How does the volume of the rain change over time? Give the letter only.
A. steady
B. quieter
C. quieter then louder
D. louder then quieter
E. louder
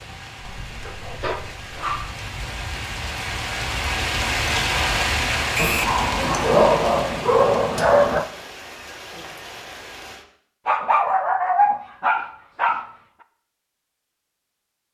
D.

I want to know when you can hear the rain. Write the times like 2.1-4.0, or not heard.
0.0-10.2.